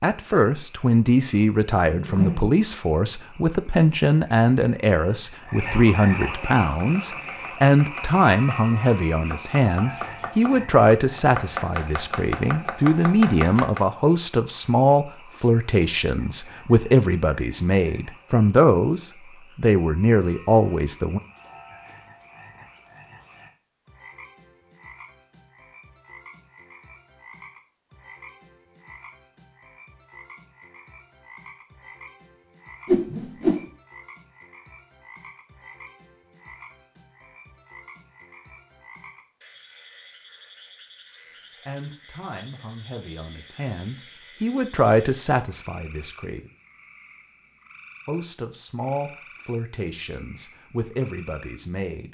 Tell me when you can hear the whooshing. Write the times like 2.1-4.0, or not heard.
1.9-2.5, 32.9-33.6.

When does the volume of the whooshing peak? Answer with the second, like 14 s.
33 s.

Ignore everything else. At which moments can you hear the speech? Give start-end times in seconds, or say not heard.
0.0-21.2, 41.6-46.5, 48.0-52.1.